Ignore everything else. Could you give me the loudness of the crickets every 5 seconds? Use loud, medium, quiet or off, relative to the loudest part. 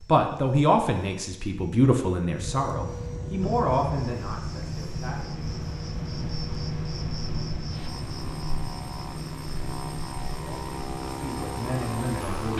loud, loud, medium.